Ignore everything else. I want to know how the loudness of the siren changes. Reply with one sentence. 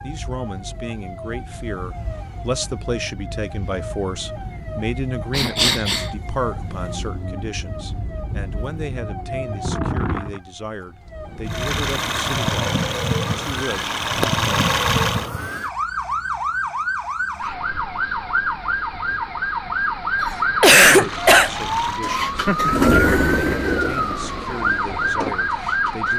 The loudness of the siren goes up.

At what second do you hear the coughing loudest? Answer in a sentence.
The loudest moment of the coughing is at 21 seconds.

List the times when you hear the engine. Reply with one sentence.
You can hear the engine from 11.4 to 15.3 s and from 20.9 to 26.1 s.